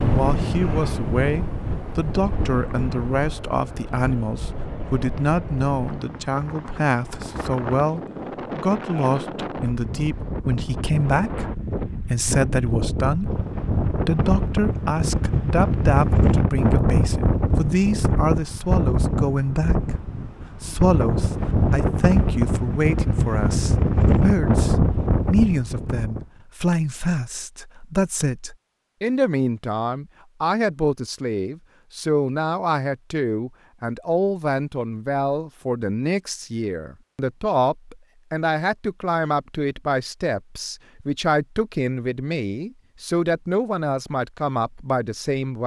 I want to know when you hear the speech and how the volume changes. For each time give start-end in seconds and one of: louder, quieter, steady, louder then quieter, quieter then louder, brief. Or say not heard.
0.0-45.6 steady.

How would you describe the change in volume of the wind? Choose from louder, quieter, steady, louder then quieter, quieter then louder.
louder.